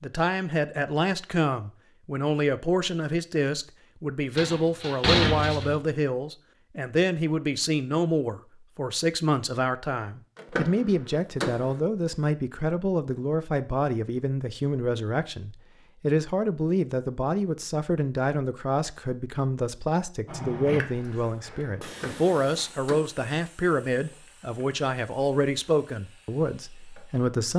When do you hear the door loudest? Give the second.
5 s.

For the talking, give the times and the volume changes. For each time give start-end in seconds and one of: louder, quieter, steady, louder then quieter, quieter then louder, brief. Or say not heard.
0.0-27.5 steady.